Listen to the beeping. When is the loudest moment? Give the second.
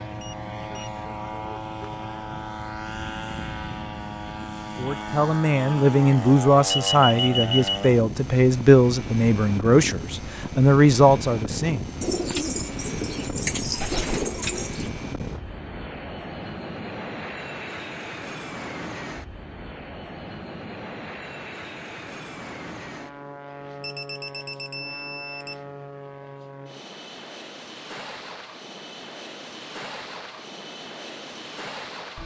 7 s.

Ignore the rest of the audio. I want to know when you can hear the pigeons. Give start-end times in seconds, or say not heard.
12.0-14.9.